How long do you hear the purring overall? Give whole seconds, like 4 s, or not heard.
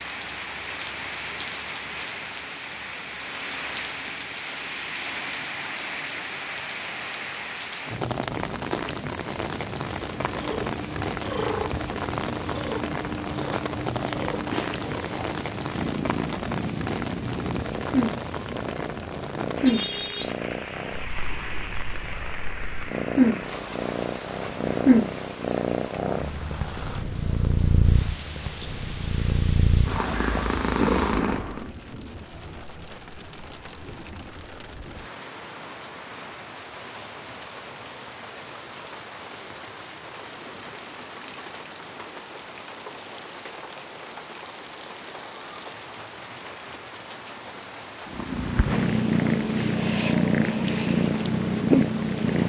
26 s.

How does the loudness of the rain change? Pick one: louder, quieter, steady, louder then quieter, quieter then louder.
quieter.